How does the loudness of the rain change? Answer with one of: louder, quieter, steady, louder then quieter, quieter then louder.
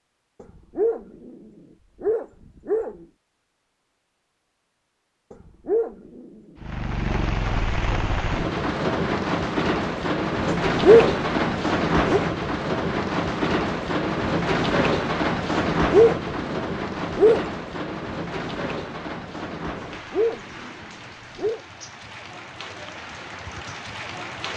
quieter.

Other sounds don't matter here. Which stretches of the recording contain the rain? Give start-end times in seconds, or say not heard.
6.6-24.5.